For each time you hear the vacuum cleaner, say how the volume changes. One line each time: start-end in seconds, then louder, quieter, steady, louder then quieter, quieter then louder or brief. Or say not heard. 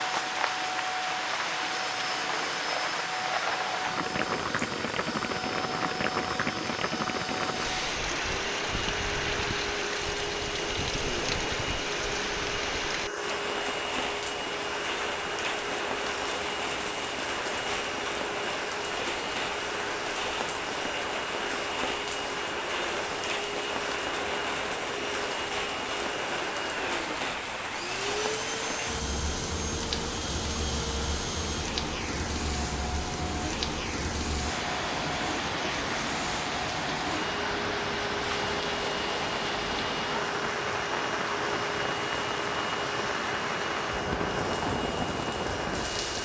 0.0-46.2 steady.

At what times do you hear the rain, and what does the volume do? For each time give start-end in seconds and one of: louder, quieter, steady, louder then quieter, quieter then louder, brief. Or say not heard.
0.0-46.2 steady.